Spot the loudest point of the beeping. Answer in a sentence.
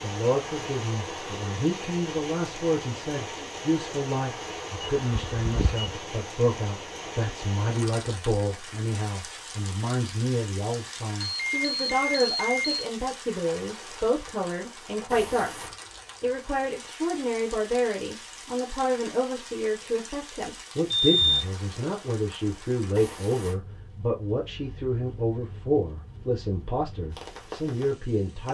The volume of the beeping peaks at 21 seconds.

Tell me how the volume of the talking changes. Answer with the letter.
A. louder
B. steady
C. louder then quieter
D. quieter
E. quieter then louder
B.